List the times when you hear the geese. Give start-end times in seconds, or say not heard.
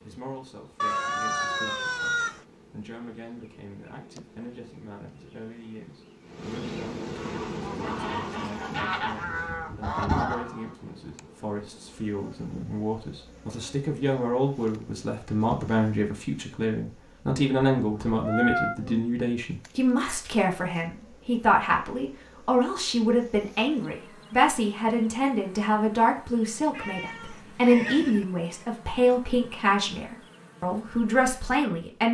7.2-10.7.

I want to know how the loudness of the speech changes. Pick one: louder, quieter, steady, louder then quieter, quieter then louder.
louder.